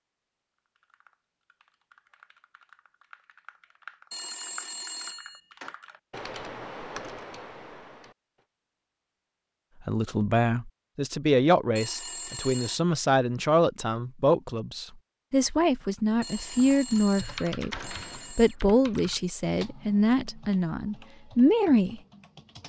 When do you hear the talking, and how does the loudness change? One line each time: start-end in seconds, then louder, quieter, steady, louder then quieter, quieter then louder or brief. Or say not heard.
9.8-22.0 steady.